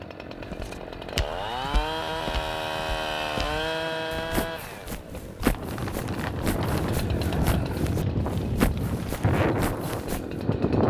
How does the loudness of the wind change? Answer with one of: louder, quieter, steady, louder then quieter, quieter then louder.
louder.